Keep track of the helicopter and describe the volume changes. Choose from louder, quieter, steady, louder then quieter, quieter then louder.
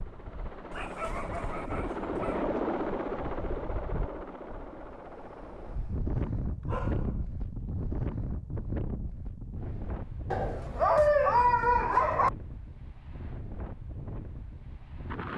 louder then quieter.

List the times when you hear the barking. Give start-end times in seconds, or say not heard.
0.7-2.5, 6.7-7.2, 10.3-12.3.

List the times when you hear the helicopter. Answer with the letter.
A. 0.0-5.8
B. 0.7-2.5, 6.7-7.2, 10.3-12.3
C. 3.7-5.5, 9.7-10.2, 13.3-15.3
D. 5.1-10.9
A.